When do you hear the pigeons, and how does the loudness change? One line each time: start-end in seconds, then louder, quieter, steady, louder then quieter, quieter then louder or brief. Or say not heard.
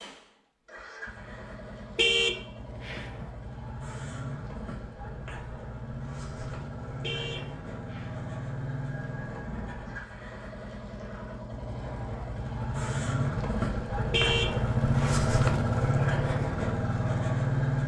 not heard.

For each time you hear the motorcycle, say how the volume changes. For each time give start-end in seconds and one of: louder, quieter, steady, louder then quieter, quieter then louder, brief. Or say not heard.
0.0-17.8 louder.